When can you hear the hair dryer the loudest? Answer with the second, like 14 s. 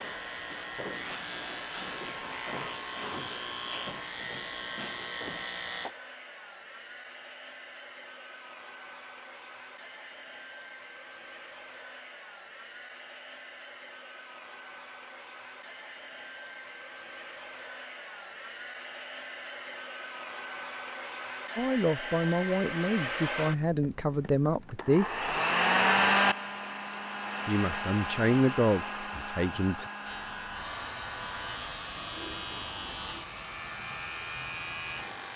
26 s.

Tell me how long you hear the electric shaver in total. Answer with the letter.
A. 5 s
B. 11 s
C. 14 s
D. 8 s
B.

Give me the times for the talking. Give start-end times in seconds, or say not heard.
21.6-25.4, 27.4-29.9.